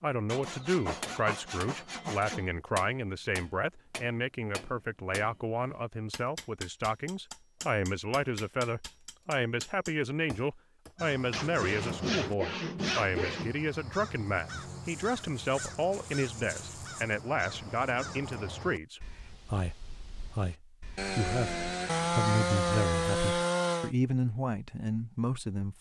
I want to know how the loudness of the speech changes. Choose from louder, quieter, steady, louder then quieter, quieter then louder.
steady.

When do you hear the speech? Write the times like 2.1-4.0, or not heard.
0.0-25.7.